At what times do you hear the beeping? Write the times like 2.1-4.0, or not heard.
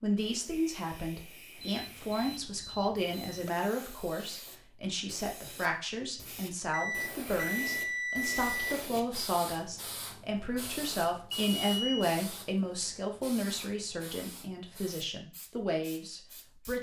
1.6-3.5, 6.7-8.8, 11.4-12.1.